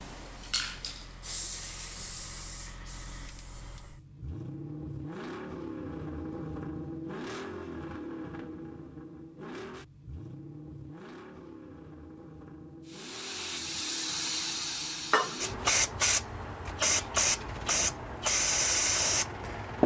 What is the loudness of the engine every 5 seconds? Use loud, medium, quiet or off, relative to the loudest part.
medium, loud, medium, medium.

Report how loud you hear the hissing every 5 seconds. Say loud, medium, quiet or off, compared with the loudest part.
quiet, off, medium, loud.